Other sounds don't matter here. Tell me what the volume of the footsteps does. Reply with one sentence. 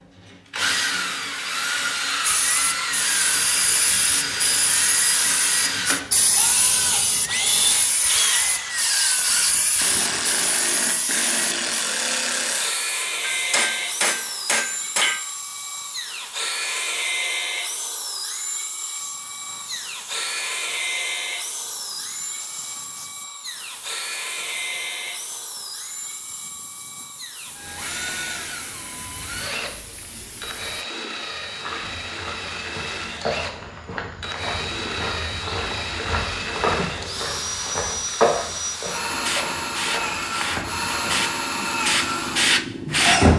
The loudness of the footsteps goes up, then down.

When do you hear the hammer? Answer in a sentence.
The hammer can be heard from 13.2 to 15.2 s.